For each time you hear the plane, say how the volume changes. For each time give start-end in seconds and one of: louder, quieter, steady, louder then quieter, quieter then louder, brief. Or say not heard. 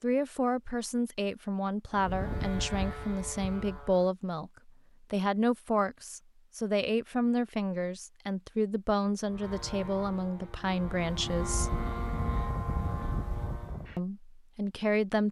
1.9-4.1 brief
9.2-14.0 louder.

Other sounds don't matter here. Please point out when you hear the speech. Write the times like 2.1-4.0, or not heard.
0.0-11.8, 13.9-15.2.